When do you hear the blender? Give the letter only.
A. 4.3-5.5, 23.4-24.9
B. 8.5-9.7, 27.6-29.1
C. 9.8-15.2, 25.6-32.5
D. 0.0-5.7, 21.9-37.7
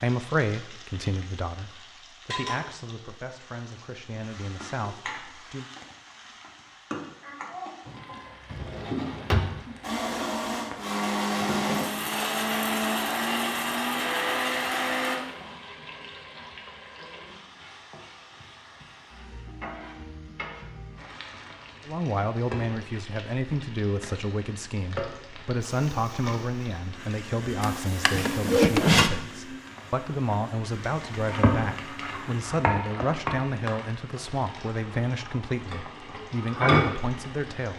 C.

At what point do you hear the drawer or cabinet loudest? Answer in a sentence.
The loudest moment of the drawer or cabinet is at 29 seconds.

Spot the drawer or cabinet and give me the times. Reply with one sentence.
You can hear the drawer or cabinet from 8.5 to 9.7 s and from 27.6 to 29.1 s.